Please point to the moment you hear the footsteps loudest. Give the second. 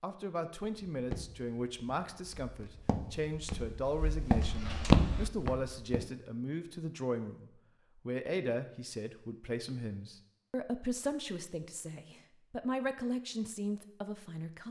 5 s.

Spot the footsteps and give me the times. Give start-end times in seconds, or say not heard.
0.9-6.0.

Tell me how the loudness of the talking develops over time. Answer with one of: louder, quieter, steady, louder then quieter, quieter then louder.
steady.